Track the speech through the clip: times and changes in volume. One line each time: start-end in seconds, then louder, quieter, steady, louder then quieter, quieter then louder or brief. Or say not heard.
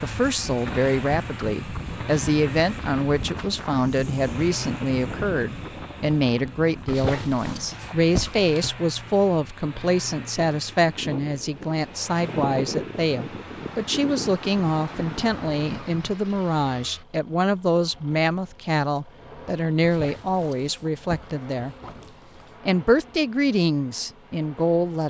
0.0-21.8 steady
22.6-25.0 brief.